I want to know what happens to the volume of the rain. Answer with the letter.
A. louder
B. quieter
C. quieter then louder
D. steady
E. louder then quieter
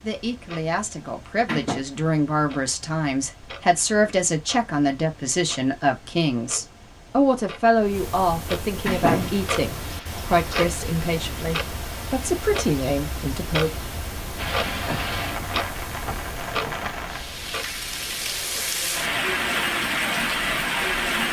A.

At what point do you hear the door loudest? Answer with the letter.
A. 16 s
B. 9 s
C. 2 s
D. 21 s
B.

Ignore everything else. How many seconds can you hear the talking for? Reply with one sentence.
The talking can be heard for 14 seconds in total.